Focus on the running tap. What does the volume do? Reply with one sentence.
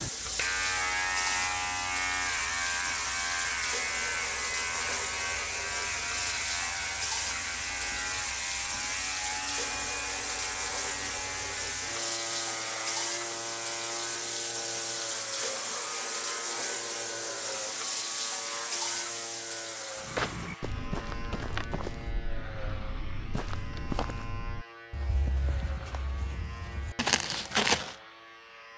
The volume of the running tap stays about the same.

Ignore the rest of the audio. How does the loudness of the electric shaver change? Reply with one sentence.
The volume of the electric shaver goes down.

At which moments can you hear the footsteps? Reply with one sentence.
You can hear the footsteps from 20.0 to 27.9 s.